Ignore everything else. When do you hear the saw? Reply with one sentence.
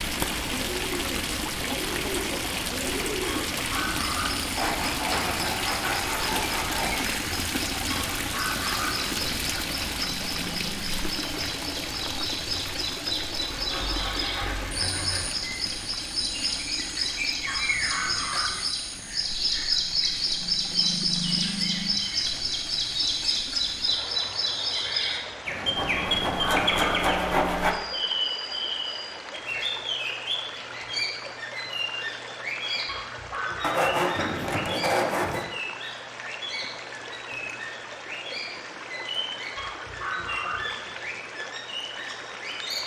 You can hear the saw from 4.5 to 7.0 s, from 13.4 to 15.3 s, from 25.8 to 27.8 s and from 33.6 to 35.5 s.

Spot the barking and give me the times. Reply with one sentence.
You can hear the barking from 3.2 to 4.3 s, from 7.9 to 8.9 s, from 17.4 to 18.6 s, from 25.9 to 27.1 s, from 32.9 to 34.0 s and from 39.5 to 40.6 s.